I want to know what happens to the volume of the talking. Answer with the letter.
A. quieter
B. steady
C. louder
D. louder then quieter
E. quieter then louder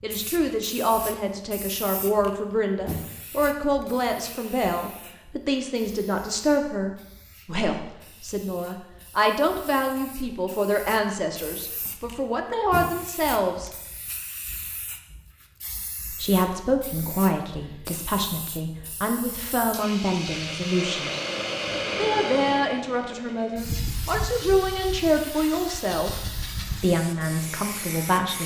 B.